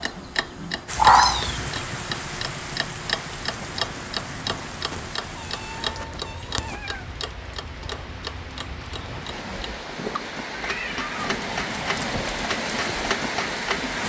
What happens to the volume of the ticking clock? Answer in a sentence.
The volume of the ticking clock goes down, then up.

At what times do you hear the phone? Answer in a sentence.
The phone can't be heard in this clip.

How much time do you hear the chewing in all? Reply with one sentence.
You can't hear the chewing here.